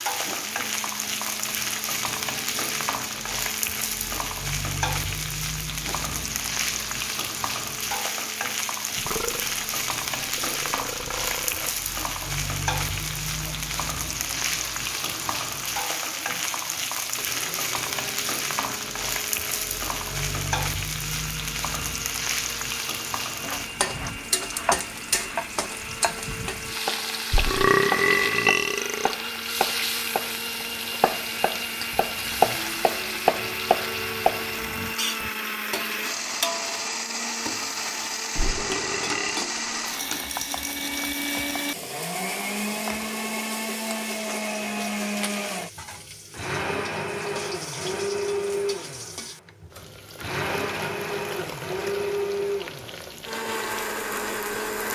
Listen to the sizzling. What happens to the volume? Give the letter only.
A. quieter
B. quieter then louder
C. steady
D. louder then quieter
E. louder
A.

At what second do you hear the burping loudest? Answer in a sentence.
The loudest moment of the burping is at 28 seconds.